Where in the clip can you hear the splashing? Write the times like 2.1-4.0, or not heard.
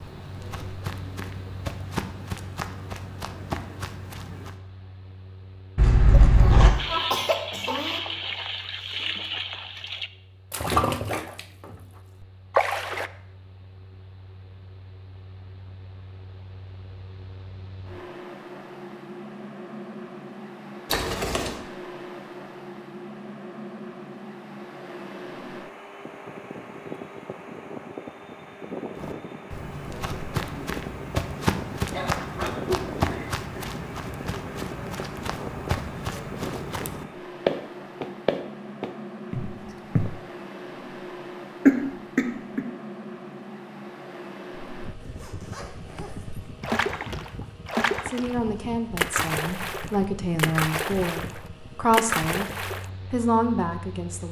6.8-13.1, 46.6-52.9.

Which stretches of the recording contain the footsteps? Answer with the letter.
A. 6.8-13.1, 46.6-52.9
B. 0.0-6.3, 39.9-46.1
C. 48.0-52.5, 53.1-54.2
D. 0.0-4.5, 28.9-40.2
D.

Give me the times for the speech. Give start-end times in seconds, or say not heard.
48.0-52.5, 53.1-54.2.